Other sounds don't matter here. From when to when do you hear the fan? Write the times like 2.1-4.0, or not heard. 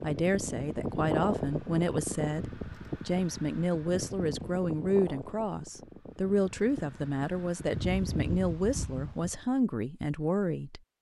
0.0-9.4.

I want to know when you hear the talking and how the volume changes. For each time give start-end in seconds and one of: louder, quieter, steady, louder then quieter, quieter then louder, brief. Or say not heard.
0.0-10.8 steady.